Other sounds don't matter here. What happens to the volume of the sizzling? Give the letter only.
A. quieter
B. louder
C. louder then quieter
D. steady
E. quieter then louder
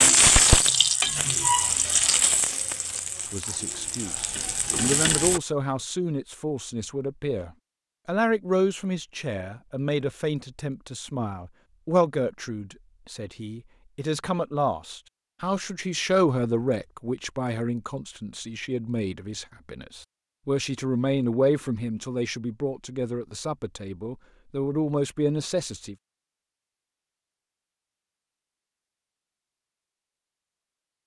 E.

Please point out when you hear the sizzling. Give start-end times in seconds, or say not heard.
0.0-5.4.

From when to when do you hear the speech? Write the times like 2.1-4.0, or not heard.
3.2-25.9.